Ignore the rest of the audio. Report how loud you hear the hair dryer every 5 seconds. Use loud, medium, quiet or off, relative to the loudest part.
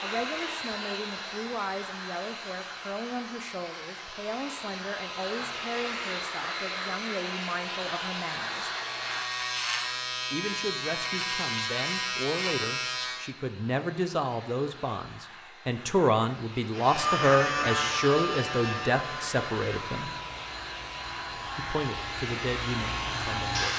loud, loud, quiet, medium, loud.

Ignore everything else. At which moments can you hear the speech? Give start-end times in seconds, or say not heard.
0.0-8.7, 10.3-20.1, 21.6-23.7.